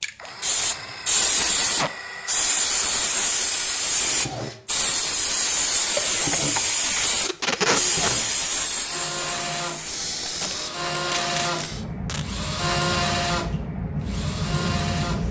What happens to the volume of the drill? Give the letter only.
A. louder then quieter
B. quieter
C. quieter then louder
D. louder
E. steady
D.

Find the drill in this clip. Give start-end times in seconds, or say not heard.
0.1-15.2.